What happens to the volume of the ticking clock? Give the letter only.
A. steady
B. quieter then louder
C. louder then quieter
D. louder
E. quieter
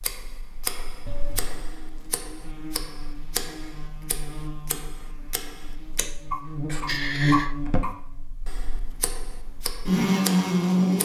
C.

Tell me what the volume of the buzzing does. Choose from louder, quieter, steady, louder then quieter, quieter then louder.
louder.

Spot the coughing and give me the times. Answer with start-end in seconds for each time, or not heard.
1.1-1.7, 6.0-7.8.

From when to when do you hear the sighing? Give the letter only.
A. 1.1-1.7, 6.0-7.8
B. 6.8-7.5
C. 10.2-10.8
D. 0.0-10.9
B.